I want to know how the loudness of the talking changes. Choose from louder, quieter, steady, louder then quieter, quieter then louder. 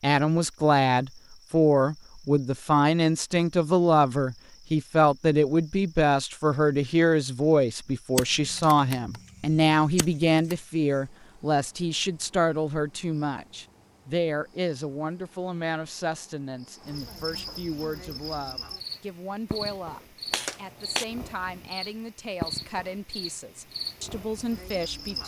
quieter.